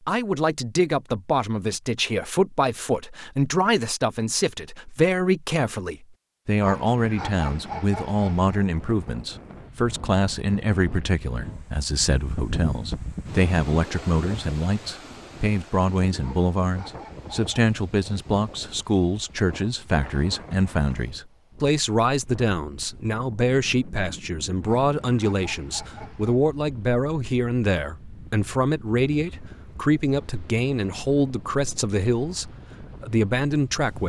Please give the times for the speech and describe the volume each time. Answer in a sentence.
The speech can be heard from 0.0 to 34.0 s, at a steady volume.